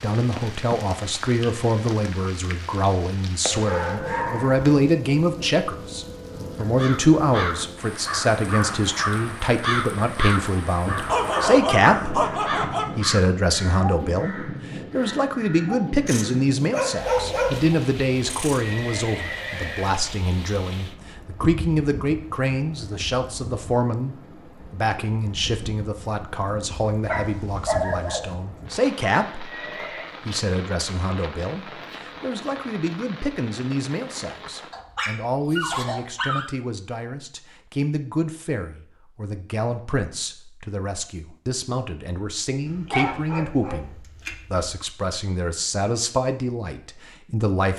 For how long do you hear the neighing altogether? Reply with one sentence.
You can hear the neighing for 2 seconds altogether.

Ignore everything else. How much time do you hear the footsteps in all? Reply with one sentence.
The footsteps can't be heard in this clip.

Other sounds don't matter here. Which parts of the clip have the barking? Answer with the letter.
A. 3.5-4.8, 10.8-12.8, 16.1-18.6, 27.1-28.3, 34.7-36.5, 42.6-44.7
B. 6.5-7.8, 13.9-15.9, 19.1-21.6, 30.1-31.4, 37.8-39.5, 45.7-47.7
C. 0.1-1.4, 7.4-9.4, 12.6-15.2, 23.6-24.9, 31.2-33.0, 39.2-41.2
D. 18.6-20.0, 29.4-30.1
A.